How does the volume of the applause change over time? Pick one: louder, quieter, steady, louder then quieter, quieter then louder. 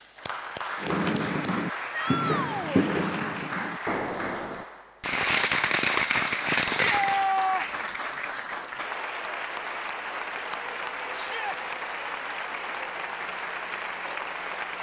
steady.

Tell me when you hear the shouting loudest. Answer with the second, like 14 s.
7 s.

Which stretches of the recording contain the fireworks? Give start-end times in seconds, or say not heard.
0.8-7.2.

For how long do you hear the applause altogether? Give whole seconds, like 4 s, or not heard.
15 s.